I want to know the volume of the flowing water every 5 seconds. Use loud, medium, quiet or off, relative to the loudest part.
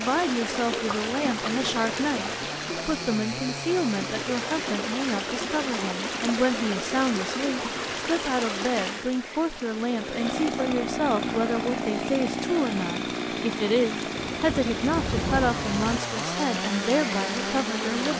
loud, loud, medium, loud.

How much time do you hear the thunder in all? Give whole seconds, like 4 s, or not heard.
2 s.